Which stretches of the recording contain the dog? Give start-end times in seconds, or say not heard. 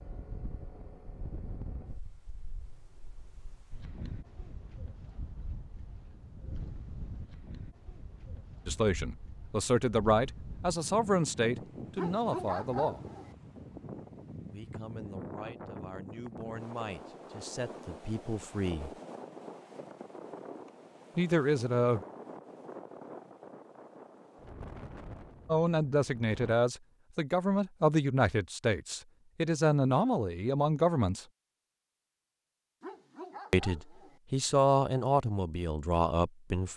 11.9-13.3, 32.8-34.2.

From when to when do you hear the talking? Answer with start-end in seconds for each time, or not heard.
8.7-13.0, 14.5-18.9, 21.1-22.0, 25.4-31.2, 33.5-36.7.